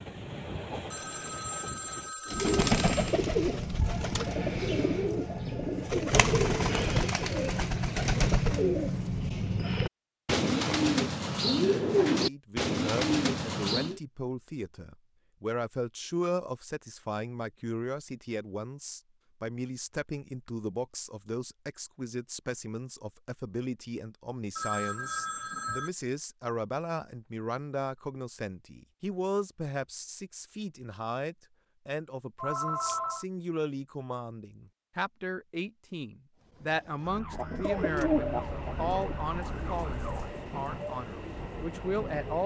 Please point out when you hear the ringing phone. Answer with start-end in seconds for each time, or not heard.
0.9-3.1, 24.6-25.9, 32.4-33.2.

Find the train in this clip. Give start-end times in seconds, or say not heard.
0.0-2.1, 37.7-42.4.